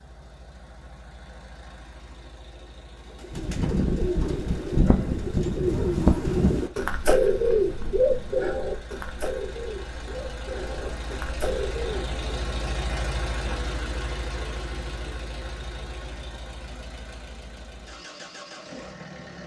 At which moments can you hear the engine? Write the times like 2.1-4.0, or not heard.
0.0-19.4.